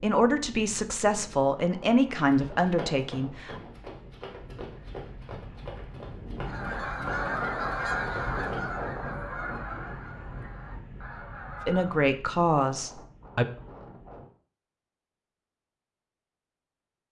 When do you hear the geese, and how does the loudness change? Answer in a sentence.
You can hear the geese from 6.5 to 12.0 s, getting quieter.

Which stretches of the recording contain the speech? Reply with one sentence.
The speech can be heard from 0.0 to 3.5 s and from 11.7 to 13.4 s.